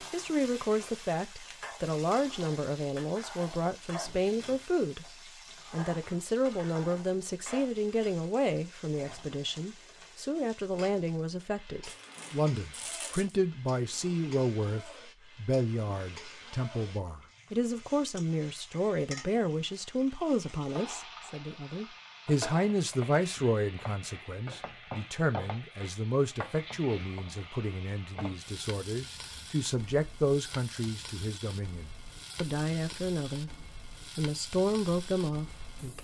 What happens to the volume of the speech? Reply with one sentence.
The loudness of the speech stays about the same.